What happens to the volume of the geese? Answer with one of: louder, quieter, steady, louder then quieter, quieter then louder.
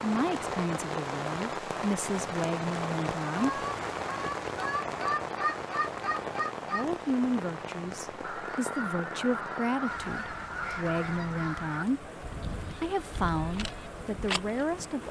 quieter.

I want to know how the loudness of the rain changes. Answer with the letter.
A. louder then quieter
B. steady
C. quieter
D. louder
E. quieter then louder
C.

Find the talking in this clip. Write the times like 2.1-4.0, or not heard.
0.0-3.6, 6.7-15.0.